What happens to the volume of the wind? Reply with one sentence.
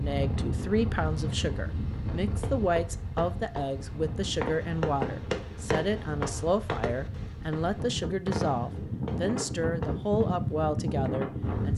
The loudness of the wind goes down, then up.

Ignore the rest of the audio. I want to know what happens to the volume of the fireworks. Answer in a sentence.
The volume of the fireworks goes up, then down.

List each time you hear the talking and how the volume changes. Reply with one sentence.
You can hear the talking from 0.0 to 11.7 s, at a steady volume.